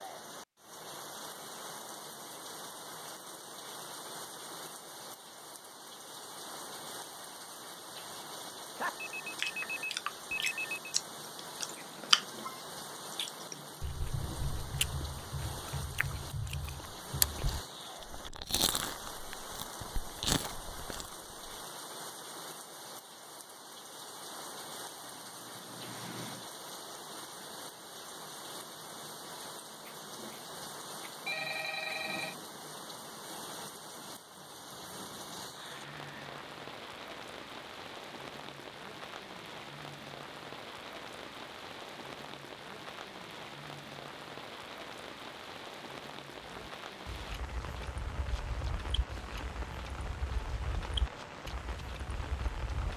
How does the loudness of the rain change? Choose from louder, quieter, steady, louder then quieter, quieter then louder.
steady.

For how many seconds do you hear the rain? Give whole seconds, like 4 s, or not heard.
53 s.